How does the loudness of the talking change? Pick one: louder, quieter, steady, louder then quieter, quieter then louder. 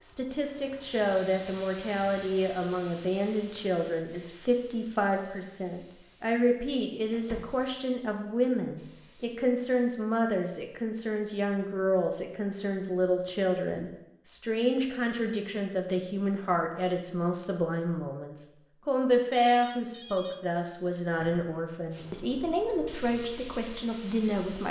steady.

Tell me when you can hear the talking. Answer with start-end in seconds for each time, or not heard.
0.0-24.6.